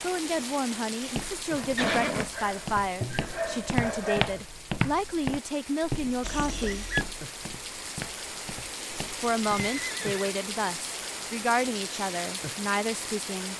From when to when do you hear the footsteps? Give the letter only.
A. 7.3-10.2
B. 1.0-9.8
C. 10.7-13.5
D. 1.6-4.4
B.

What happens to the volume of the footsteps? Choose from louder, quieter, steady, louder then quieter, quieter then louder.
louder then quieter.